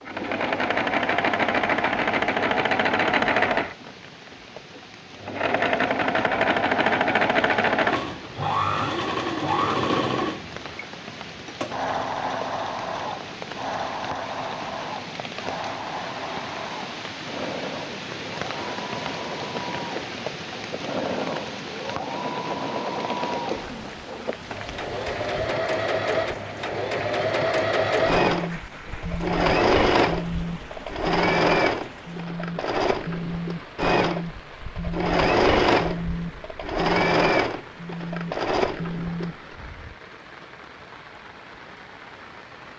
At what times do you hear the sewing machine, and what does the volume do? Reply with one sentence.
The sewing machine can be heard from 0.0 to 40.0 s, getting quieter then louder.